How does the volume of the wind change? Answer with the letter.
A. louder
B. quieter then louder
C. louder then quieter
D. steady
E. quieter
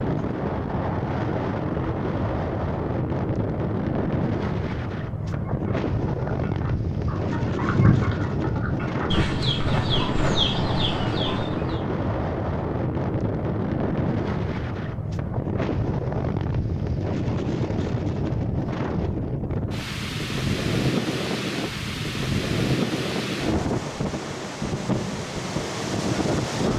D.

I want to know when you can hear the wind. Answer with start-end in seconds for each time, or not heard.
0.0-26.7.